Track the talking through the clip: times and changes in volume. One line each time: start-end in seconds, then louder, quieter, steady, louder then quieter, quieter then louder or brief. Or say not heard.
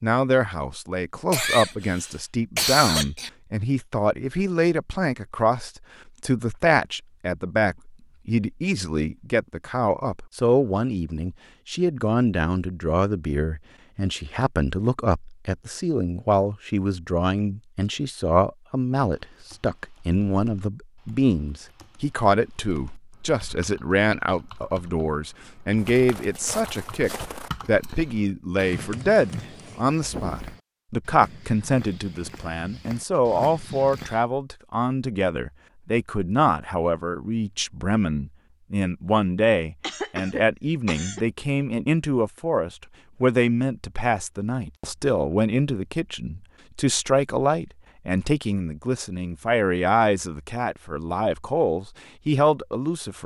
0.0-53.2 steady.